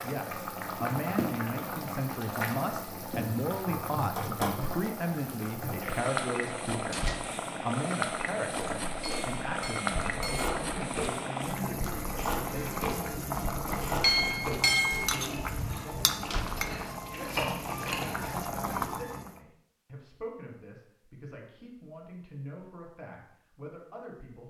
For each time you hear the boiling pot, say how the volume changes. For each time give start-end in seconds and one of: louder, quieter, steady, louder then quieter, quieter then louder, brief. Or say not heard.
0.0-19.4 steady.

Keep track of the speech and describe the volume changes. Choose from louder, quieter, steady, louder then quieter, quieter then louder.
quieter.